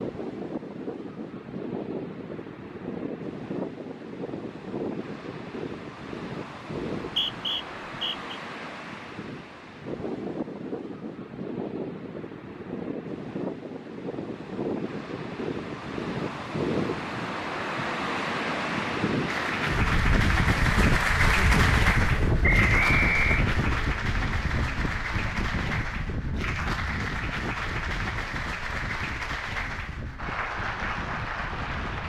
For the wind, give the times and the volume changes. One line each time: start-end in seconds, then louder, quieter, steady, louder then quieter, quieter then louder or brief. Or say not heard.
0.0-32.0 louder then quieter.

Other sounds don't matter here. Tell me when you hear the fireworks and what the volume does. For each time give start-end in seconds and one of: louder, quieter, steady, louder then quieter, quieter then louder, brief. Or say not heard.
not heard.